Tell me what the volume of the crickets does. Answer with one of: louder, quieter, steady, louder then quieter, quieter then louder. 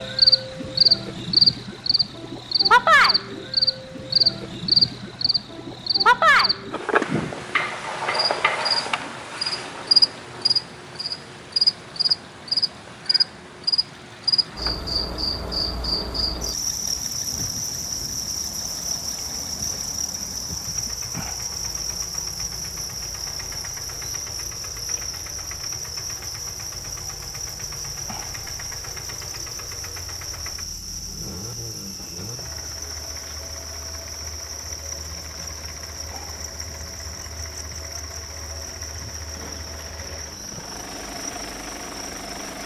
quieter.